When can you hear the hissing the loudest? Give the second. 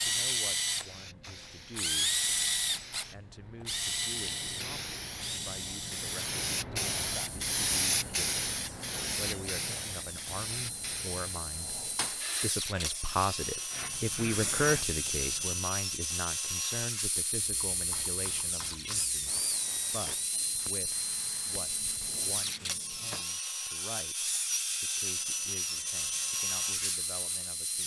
8 s.